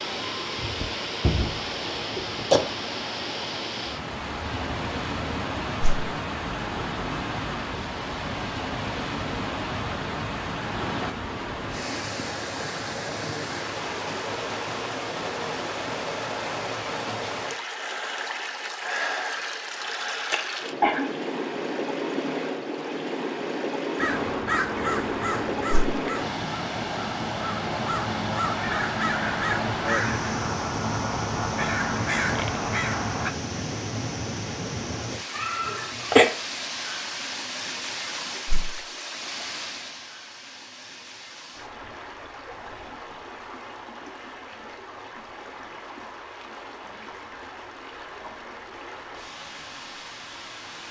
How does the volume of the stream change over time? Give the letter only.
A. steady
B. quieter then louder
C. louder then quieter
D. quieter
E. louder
D.